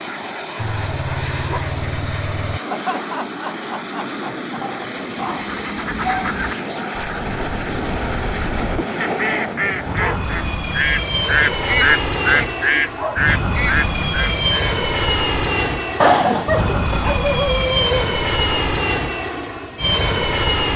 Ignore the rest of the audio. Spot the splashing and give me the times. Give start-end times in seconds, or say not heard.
not heard.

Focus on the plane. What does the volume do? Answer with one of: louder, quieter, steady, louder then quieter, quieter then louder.
louder.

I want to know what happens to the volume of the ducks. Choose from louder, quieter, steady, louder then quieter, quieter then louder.
louder.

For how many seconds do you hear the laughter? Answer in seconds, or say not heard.
3 s.